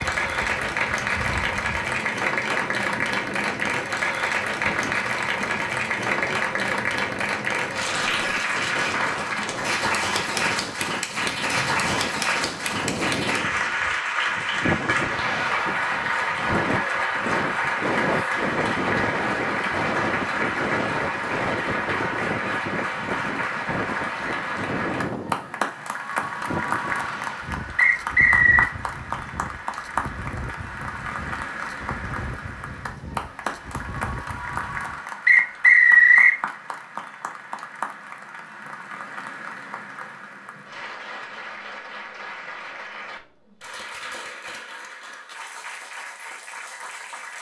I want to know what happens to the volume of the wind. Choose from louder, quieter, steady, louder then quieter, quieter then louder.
louder then quieter.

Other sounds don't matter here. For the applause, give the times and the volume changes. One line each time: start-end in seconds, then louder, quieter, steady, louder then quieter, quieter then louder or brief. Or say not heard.
0.0-47.3 quieter.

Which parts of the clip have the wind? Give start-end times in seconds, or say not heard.
0.0-35.0.